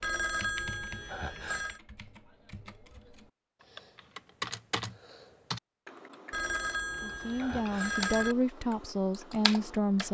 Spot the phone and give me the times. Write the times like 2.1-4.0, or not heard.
0.0-1.8, 6.3-8.3.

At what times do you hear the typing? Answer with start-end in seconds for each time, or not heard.
0.0-10.0.